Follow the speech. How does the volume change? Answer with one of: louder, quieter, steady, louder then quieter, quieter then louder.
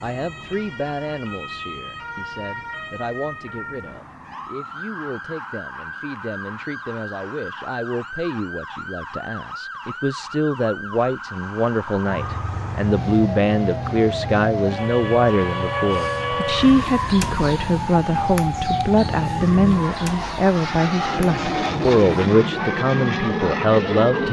louder.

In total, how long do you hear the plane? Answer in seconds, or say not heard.
12 s.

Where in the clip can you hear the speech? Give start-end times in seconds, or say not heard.
0.0-24.2.